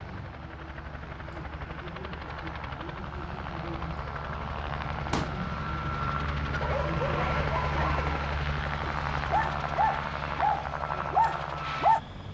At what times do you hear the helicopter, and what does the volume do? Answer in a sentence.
You can hear the helicopter from 0.0 to 12.2 s, getting louder.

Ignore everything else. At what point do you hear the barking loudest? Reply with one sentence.
The loudest moment of the barking is at 12 seconds.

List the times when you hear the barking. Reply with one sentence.
The barking can be heard from 6.5 to 12.0 s.